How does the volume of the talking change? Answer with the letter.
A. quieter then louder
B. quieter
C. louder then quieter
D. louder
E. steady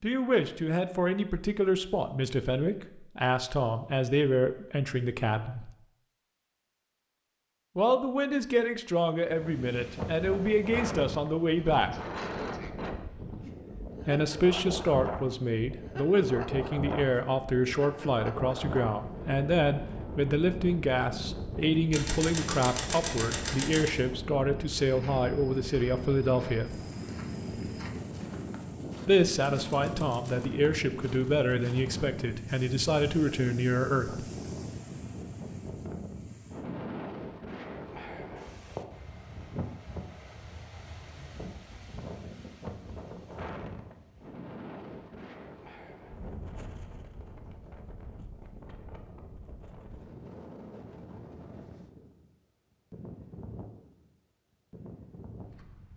E.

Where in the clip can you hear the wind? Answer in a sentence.
The wind can be heard from 9.2 to 55.9 s.